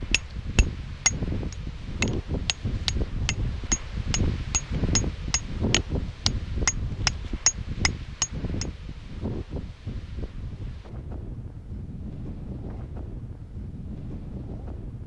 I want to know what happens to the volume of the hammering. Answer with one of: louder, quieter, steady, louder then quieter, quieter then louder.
quieter then louder.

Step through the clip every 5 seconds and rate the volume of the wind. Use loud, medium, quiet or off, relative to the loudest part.
loud, loud, medium.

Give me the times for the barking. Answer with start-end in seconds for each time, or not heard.
not heard.